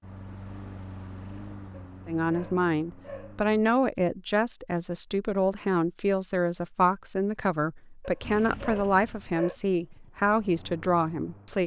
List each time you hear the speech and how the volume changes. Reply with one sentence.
The speech can be heard from 2.0 to 11.6 s, at a steady volume.